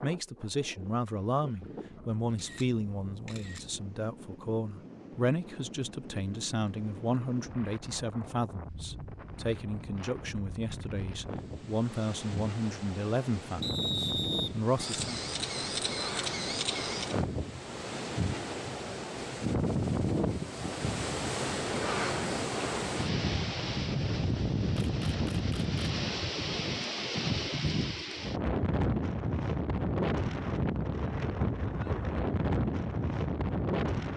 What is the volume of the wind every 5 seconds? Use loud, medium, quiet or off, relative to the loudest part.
quiet, quiet, medium, loud, loud, loud, loud.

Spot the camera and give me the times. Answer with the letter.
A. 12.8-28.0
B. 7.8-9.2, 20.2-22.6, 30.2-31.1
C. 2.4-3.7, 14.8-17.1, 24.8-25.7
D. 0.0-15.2
C.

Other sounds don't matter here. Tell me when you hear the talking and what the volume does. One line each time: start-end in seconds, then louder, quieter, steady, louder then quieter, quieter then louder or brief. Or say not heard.
0.0-15.2 steady.